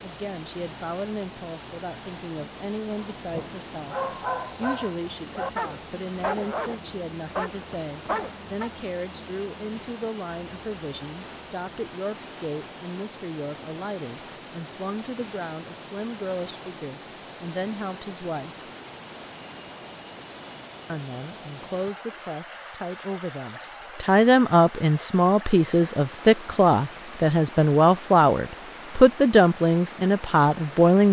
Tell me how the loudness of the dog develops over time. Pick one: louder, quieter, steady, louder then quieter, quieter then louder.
steady.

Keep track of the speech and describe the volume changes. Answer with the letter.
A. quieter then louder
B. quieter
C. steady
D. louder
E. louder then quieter
D.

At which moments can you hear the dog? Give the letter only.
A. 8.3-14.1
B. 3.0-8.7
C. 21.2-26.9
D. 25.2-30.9
B.